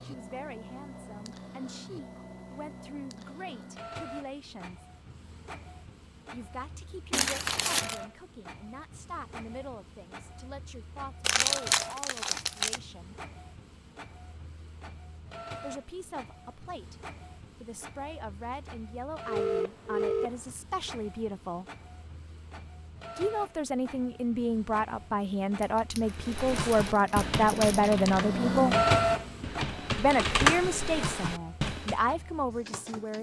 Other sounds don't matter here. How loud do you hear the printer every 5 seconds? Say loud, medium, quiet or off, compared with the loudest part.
quiet, quiet, quiet, quiet, quiet, loud, quiet.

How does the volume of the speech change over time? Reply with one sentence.
The volume of the speech goes up.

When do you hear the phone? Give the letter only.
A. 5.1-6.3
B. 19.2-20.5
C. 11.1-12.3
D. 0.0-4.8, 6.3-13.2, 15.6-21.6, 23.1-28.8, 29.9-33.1
B.